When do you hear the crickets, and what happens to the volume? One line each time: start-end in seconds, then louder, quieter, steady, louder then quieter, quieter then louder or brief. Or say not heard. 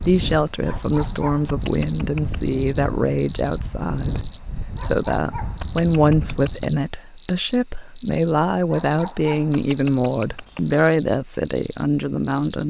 0.0-12.6 steady.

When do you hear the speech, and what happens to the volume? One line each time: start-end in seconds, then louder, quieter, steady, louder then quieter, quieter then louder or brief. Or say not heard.
0.0-12.6 steady.